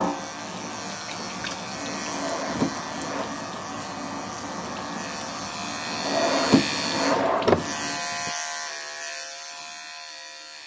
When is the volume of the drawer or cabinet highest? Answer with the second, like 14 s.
7 s.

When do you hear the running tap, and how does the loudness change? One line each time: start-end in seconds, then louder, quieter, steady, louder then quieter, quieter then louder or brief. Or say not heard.
0.0-8.3 steady.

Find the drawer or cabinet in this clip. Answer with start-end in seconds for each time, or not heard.
2.1-3.3, 6.0-7.7.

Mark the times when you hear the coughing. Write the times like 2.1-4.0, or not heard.
not heard.